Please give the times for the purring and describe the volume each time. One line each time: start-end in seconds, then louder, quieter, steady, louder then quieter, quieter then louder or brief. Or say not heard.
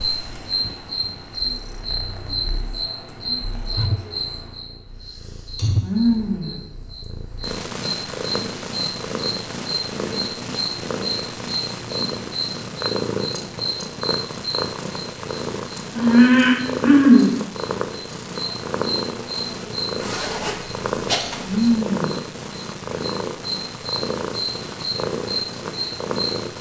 0.0-26.5 louder.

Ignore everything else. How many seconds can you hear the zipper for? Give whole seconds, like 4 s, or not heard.
2 s.